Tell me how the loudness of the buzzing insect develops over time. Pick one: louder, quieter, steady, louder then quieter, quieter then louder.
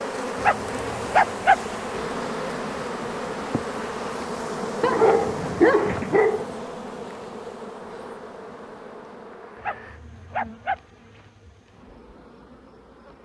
quieter.